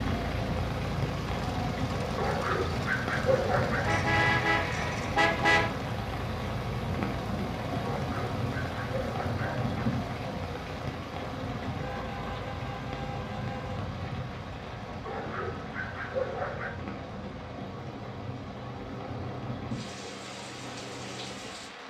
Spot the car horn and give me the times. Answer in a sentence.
You can hear the car horn from 3.8 to 5.7 s and from 11.8 to 13.8 s.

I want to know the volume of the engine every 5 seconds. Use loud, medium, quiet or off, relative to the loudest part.
loud, loud, medium, medium, medium.